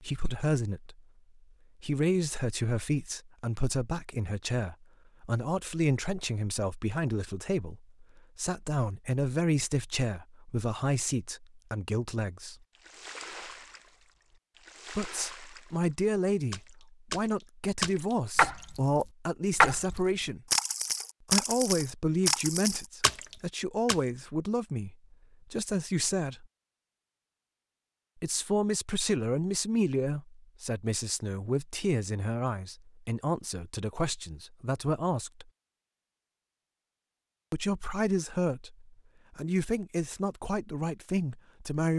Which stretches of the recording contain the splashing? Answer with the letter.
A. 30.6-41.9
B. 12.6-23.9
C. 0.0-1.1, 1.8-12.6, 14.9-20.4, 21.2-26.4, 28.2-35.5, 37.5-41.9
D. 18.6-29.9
B.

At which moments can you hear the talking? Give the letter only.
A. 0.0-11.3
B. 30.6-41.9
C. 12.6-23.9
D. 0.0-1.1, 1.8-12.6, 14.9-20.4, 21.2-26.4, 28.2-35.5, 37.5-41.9
D.